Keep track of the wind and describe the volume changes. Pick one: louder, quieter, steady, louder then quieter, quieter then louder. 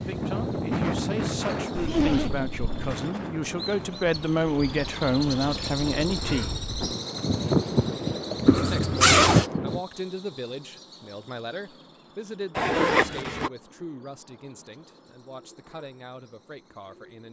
quieter then louder.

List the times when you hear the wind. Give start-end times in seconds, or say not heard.
0.0-9.8.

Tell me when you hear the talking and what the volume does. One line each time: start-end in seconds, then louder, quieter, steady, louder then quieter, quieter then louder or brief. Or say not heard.
0.1-6.6 louder
8.7-17.2 quieter.